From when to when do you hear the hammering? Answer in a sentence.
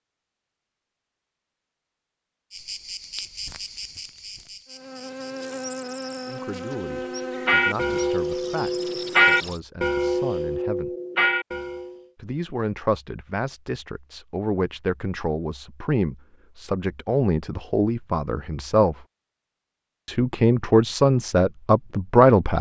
You can't hear the hammering here.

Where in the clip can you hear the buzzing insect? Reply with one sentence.
The buzzing insect can be heard from 2.5 to 9.6 s.